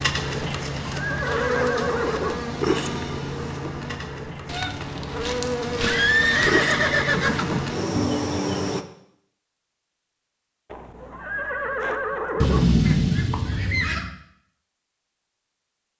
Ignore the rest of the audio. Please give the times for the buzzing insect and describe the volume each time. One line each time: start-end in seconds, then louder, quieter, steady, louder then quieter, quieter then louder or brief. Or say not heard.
0.0-8.8 quieter then louder.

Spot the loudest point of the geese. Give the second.
13 s.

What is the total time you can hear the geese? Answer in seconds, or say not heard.
4 s.